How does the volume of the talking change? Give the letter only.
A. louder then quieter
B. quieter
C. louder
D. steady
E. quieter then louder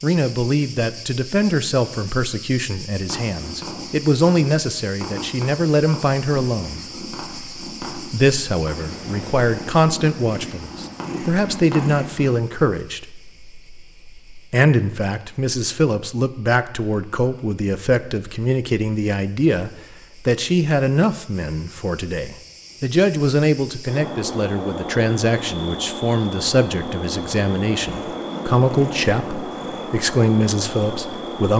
D.